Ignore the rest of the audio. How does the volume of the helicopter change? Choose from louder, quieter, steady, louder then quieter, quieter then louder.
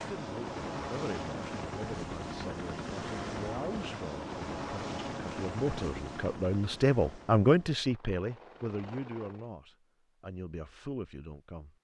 quieter.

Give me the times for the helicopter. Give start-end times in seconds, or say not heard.
0.0-9.5.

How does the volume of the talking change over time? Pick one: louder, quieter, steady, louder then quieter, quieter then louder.
louder then quieter.